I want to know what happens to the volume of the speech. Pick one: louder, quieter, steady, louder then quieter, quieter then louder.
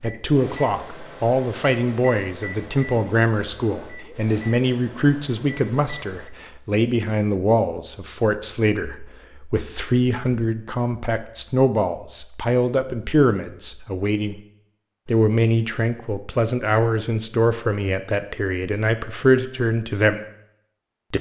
steady.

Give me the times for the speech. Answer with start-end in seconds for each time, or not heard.
0.0-14.4, 15.1-20.2.